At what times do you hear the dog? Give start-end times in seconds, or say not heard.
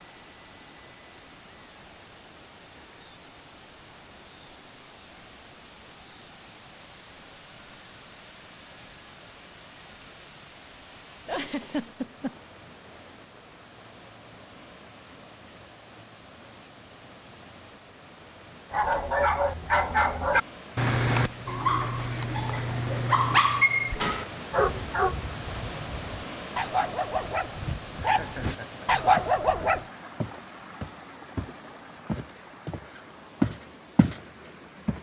18.7-29.9.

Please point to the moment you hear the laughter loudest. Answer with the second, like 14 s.
12 s.